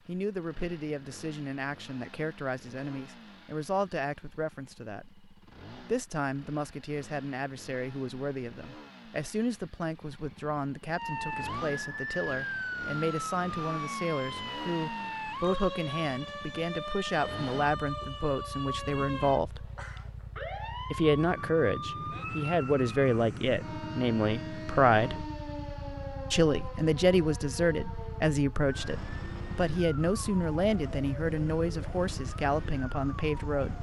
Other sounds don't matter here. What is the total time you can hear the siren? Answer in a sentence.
You can hear the siren for 23 seconds altogether.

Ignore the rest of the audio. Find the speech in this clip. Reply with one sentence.
You can hear the speech from 0.1 to 19.7 s, from 20.9 to 25.2 s and from 26.3 to 33.7 s.